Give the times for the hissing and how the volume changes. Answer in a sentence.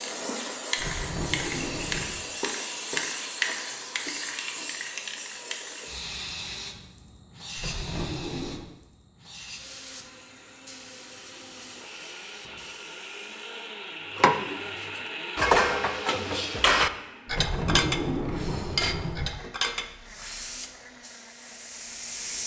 You can hear the hissing from 0.0 to 13.7 s, getting quieter; and briefly from 20.1 to 22.4 s.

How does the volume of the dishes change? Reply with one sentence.
The volume of the dishes goes down.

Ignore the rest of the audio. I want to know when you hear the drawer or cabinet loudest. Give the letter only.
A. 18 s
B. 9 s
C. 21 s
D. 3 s
A.